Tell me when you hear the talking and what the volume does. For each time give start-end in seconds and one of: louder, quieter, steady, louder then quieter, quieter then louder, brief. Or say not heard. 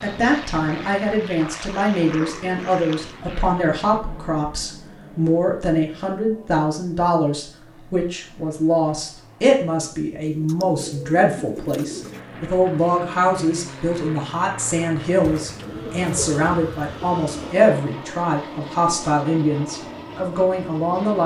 0.0-21.2 steady.